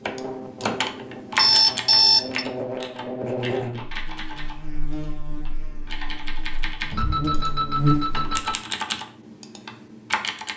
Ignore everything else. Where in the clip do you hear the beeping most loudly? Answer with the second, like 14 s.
2 s.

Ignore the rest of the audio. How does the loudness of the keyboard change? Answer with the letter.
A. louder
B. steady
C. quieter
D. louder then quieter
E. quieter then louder
E.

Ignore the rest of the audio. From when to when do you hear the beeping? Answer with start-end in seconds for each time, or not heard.
1.4-2.5, 6.9-8.6.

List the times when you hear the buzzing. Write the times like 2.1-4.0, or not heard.
0.0-8.4.